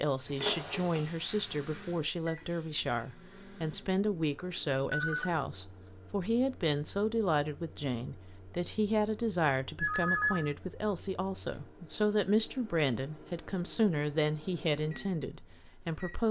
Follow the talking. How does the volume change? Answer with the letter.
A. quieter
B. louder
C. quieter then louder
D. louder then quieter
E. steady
E.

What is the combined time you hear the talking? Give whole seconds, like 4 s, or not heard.
16 s.